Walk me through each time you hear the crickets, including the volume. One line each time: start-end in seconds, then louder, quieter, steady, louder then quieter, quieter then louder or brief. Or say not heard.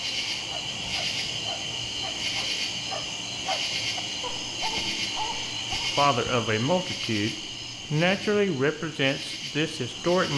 0.0-10.3 quieter.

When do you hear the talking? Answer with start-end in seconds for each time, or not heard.
6.0-10.3.